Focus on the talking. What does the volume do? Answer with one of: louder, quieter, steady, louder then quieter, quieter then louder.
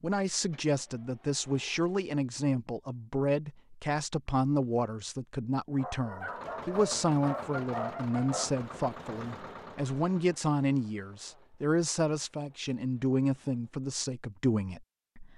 steady.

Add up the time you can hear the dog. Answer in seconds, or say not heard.
3 s.